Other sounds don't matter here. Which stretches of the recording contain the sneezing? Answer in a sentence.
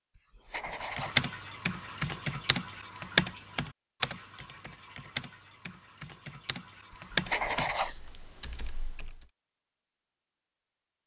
The sneezing can't be heard in this clip.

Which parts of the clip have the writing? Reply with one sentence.
You can hear the writing from 0.1 to 1.2 s and from 6.9 to 8.0 s.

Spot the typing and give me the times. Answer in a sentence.
You can hear the typing from 0.8 to 9.2 s.